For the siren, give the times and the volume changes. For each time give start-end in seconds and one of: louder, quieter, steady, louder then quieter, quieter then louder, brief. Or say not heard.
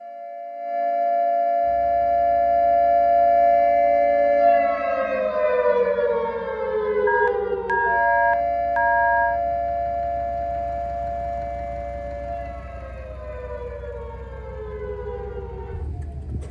0.0-16.4 quieter.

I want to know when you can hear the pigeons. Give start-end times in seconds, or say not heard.
not heard.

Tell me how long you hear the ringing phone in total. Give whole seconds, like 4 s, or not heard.
2 s.